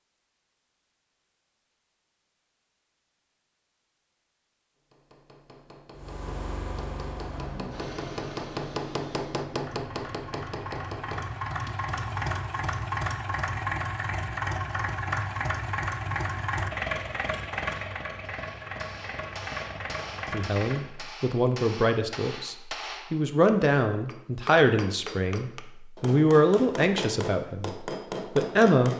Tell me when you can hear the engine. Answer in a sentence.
You can hear the engine from 6.0 to 21.1 s.